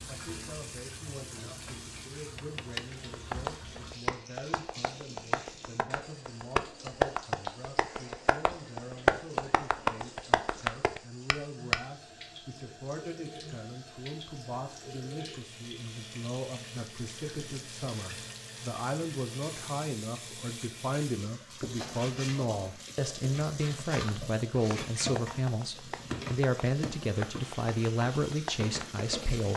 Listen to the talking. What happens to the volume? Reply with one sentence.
The loudness of the talking goes up.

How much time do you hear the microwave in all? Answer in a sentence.
You can't hear the microwave here.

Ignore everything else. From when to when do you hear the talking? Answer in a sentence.
You can hear the talking from 0.0 to 29.5 s.